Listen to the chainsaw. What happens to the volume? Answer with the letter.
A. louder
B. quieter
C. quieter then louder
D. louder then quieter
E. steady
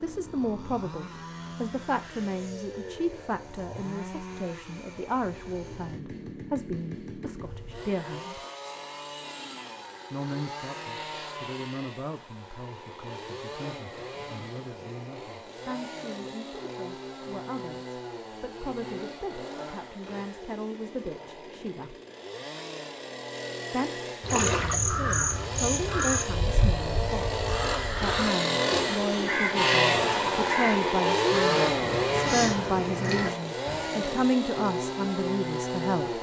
A.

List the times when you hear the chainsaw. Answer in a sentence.
The chainsaw can be heard from 0.0 to 36.1 s.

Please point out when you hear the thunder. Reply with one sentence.
The thunder can't be heard in this clip.